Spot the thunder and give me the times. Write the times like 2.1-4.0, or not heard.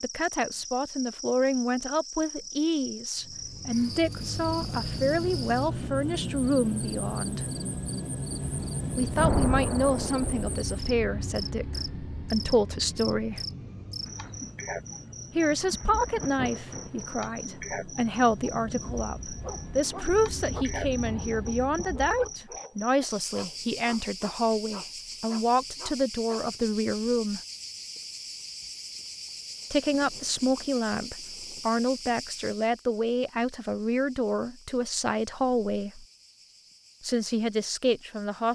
9.2-10.6, 14.0-17.9, 29.6-31.8.